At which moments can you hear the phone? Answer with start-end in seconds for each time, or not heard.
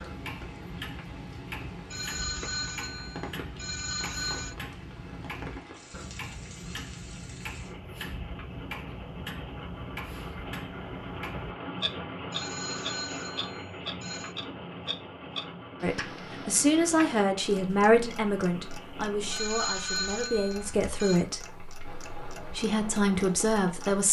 1.9-4.5, 12.3-14.3, 19.3-21.2.